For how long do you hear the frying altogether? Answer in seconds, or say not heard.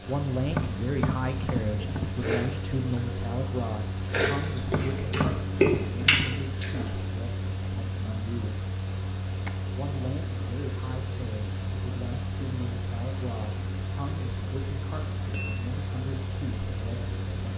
not heard.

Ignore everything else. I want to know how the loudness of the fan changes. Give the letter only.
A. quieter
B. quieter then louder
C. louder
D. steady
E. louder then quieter
D.